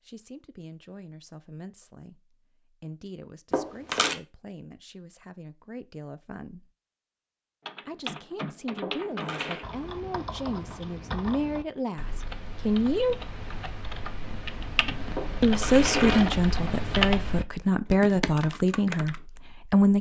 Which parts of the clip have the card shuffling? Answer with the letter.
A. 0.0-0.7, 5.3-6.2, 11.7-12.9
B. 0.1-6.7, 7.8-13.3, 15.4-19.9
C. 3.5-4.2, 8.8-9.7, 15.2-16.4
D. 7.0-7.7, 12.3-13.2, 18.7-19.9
C.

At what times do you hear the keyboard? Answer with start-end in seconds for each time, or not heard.
7.7-19.2.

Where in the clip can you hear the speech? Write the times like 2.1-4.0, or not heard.
0.1-6.7, 7.8-13.3, 15.4-19.9.